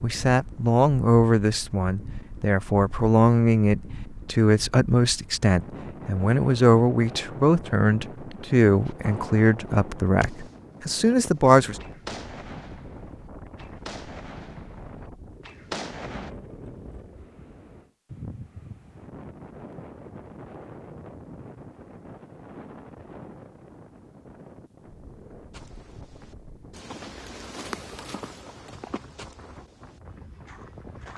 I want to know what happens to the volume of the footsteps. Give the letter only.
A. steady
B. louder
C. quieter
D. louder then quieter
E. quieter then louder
D.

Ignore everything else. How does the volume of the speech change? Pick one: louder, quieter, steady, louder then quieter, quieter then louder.
steady.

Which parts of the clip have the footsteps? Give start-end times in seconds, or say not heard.
25.5-31.1.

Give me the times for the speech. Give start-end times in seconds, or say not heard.
0.0-11.8.